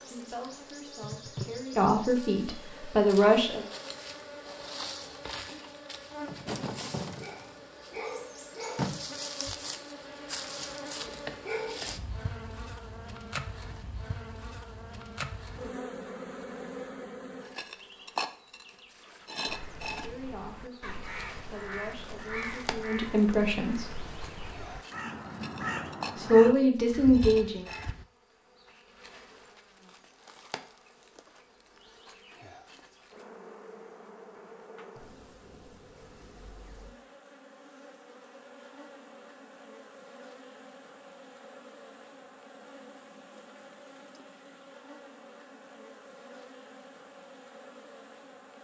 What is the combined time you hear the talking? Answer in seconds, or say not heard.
9 s.